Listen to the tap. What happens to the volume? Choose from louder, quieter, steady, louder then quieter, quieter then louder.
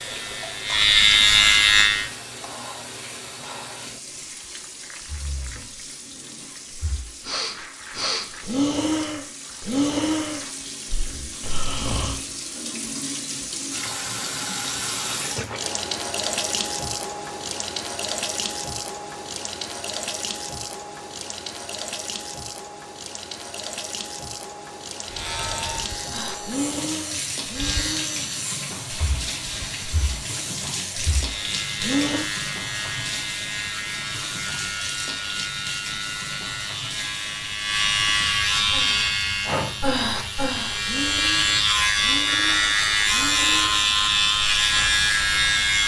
louder then quieter.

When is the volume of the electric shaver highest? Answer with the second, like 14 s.
1 s.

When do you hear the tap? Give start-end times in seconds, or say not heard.
0.0-45.8.